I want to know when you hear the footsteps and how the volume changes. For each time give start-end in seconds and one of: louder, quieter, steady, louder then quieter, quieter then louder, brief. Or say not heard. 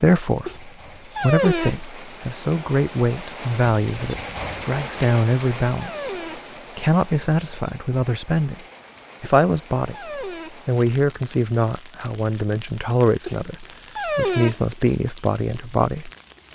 not heard.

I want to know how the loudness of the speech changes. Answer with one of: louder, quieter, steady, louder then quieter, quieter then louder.
steady.